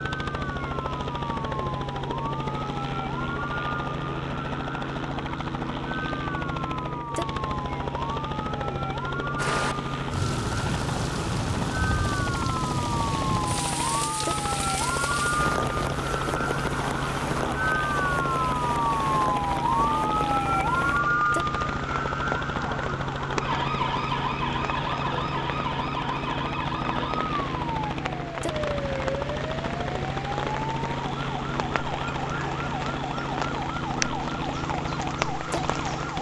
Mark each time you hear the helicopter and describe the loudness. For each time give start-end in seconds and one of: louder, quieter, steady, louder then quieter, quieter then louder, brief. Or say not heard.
0.0-36.1 steady.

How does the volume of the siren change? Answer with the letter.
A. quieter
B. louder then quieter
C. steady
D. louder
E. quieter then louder
B.